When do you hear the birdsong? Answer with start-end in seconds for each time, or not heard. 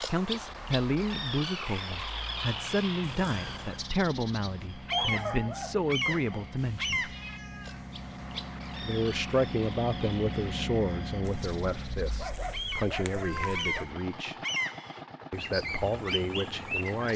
0.0-17.1.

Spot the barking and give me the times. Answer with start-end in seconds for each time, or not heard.
4.9-6.5, 11.2-13.8.